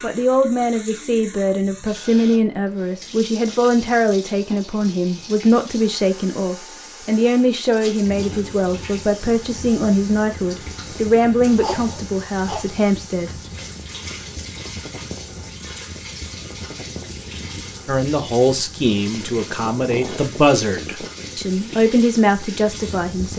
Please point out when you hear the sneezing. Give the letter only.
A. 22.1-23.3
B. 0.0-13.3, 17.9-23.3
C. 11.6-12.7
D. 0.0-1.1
C.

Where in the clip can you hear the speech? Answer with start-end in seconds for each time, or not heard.
0.0-13.3, 17.9-23.3.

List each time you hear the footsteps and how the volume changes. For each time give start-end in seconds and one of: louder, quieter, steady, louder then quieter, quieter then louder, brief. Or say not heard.
not heard.